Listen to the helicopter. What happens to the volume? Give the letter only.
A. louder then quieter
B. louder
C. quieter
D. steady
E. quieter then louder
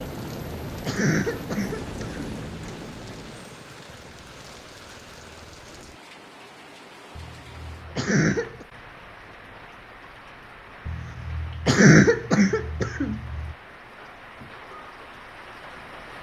C.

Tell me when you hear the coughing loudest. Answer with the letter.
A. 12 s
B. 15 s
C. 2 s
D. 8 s
A.